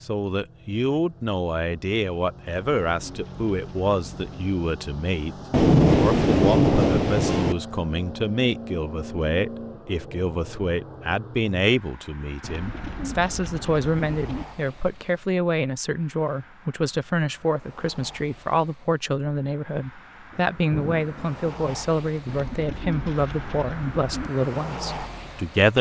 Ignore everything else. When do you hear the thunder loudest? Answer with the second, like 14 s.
6 s.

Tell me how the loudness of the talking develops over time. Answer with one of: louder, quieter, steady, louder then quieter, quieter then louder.
steady.